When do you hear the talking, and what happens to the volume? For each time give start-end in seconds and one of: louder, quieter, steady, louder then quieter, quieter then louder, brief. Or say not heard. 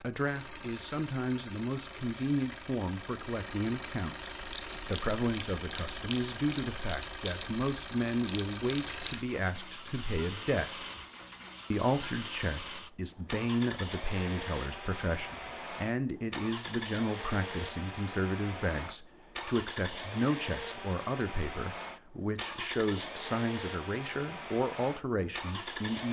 0.0-10.8 steady
11.7-26.0 steady.